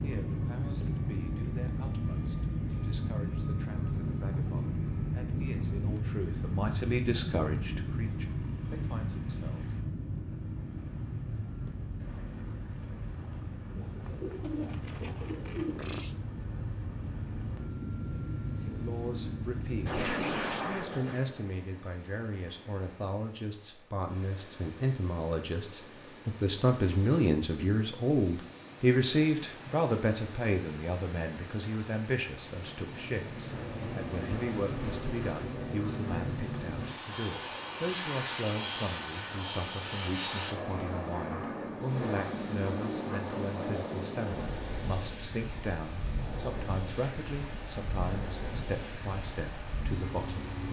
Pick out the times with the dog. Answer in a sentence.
The dog can't be heard in this clip.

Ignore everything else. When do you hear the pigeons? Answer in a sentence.
You can hear the pigeons from 13.6 to 16.1 s.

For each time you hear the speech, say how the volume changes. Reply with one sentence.
The speech can be heard from 0.0 to 9.7 s, getting louder then quieter; and from 18.6 to 50.6 s, getting louder then quieter.